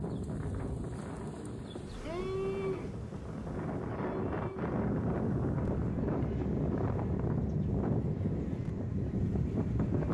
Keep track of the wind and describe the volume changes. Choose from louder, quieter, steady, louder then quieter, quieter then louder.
louder.